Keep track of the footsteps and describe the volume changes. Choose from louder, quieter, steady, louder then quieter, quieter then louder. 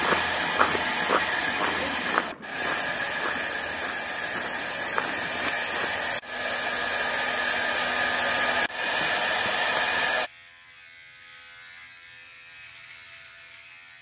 quieter then louder.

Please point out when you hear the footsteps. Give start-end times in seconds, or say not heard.
0.0-5.9.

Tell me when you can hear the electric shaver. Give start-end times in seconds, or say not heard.
10.1-13.9.